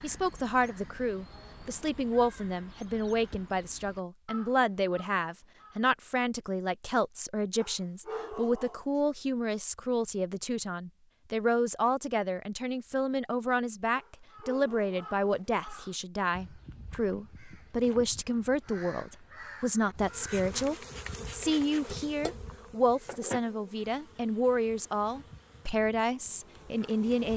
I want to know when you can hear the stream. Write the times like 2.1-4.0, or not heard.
not heard.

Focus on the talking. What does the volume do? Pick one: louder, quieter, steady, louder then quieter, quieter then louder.
steady.